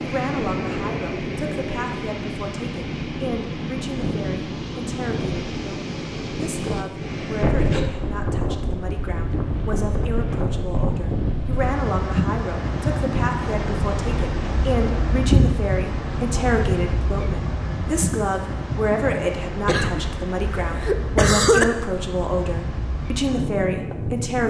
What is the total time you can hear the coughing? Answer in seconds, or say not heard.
2 s.